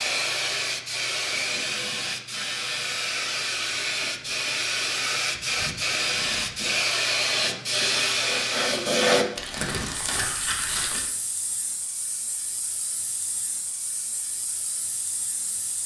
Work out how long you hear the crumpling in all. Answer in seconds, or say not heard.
2 s.